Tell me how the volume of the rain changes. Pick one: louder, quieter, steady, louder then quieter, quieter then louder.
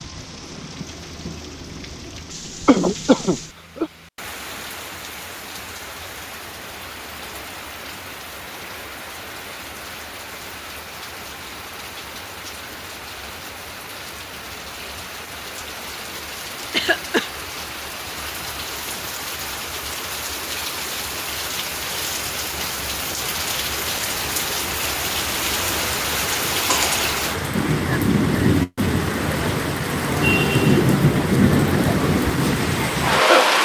louder.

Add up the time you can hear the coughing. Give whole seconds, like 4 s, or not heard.
2 s.